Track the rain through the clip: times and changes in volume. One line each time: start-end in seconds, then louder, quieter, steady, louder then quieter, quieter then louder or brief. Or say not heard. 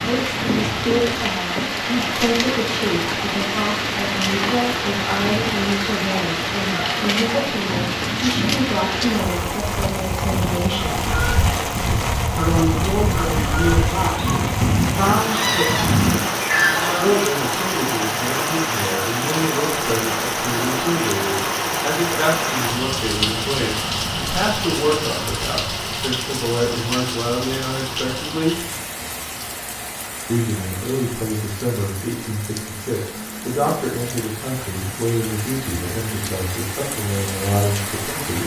0.0-38.4 quieter.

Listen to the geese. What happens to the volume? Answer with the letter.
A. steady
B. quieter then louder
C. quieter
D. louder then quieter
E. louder
E.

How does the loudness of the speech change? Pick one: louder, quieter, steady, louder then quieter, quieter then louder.
steady.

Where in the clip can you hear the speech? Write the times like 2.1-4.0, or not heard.
0.0-11.1, 12.3-15.8, 16.9-28.6, 30.2-38.4.